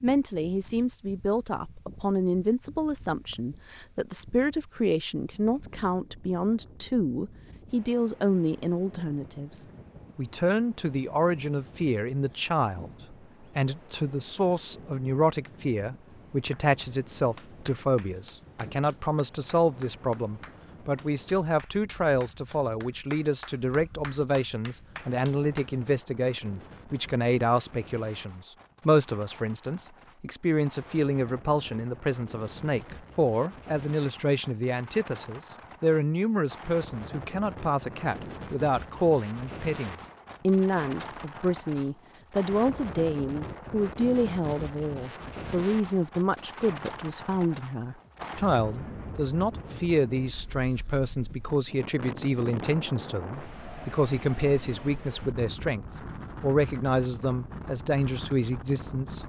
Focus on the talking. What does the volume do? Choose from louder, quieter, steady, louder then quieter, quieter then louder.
steady.